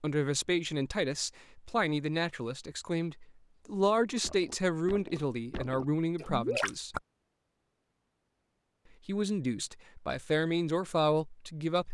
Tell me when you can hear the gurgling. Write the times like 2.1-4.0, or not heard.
4.2-7.0.